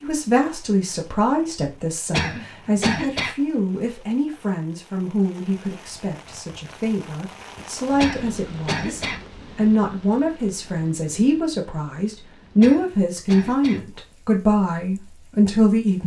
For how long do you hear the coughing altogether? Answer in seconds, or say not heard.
4 s.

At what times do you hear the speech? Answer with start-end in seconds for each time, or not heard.
0.0-16.0.